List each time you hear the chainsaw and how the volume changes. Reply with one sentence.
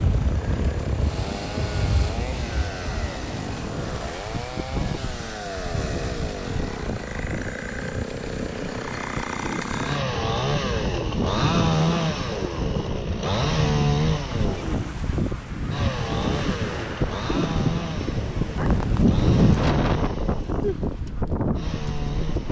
The chainsaw can be heard from 0.0 to 22.4 s, getting louder then quieter.